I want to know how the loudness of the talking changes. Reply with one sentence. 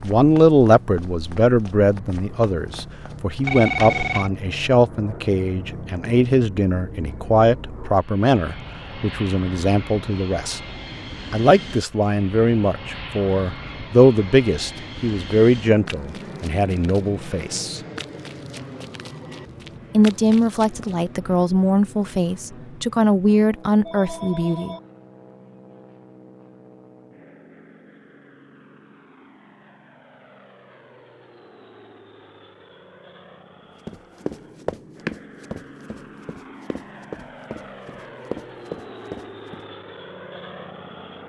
The loudness of the talking stays about the same.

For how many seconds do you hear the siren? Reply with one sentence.
The siren can't be heard in this clip.